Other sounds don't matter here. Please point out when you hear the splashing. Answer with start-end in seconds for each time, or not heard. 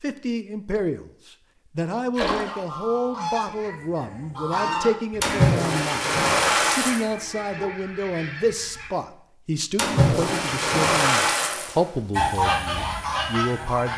2.1-2.6, 5.2-7.0, 9.8-11.8.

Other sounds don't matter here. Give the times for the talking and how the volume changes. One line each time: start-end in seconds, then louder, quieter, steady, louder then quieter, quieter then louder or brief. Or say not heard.
0.0-13.9 steady.